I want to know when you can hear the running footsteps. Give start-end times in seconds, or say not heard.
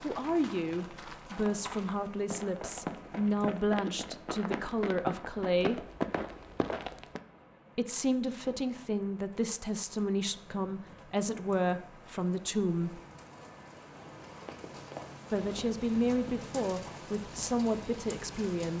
0.0-7.2, 14.4-18.7.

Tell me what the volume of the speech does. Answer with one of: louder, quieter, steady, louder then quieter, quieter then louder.
steady.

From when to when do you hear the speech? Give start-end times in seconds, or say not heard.
0.0-5.8, 7.8-13.0, 15.3-18.7.